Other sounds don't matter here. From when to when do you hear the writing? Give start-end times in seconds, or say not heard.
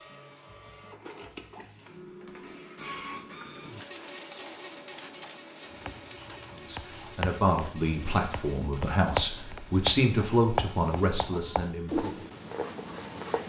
5.7-13.4.